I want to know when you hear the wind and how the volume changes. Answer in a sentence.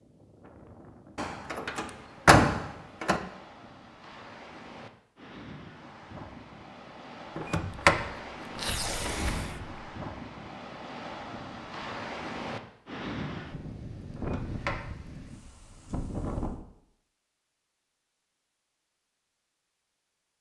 You can hear the wind from 0.0 to 16.6 s, getting louder.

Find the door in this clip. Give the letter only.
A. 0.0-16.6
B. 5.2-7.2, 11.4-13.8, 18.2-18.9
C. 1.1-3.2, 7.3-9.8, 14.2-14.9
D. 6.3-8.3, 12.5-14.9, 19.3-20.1
C.